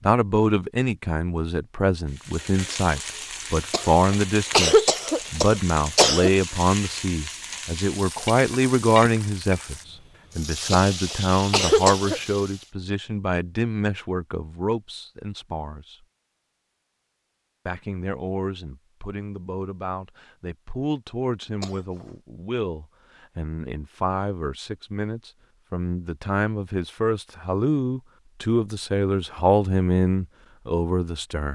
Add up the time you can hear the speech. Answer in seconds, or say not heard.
30 s.